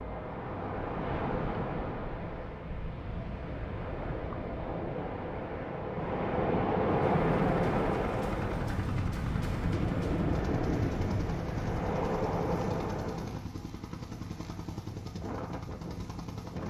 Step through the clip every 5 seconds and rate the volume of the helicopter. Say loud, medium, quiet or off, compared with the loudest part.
off, loud, loud, loud.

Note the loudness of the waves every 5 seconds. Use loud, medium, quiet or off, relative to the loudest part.
medium, loud, loud, off.